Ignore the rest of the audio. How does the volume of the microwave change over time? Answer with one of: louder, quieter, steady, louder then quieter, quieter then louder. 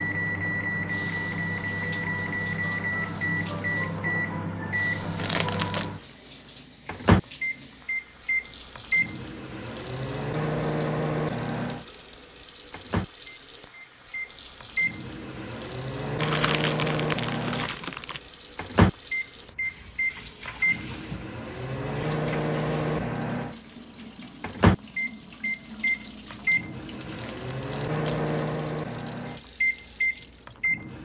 steady.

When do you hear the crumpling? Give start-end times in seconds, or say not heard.
5.2-5.8, 16.2-18.2, 27.1-28.4.